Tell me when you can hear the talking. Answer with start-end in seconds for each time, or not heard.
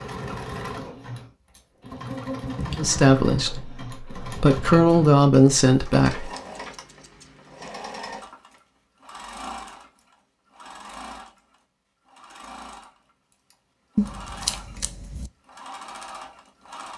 2.8-6.3.